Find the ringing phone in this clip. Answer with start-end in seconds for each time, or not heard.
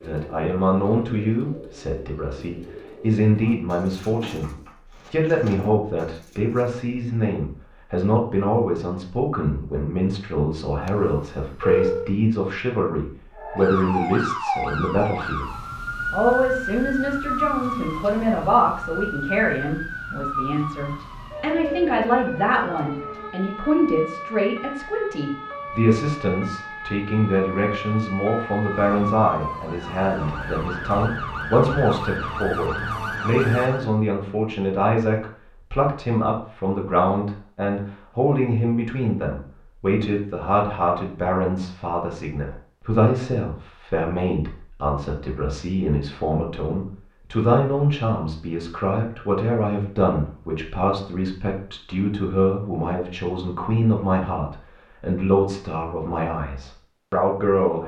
10.8-12.1.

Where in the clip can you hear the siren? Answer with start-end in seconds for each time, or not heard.
13.3-33.9.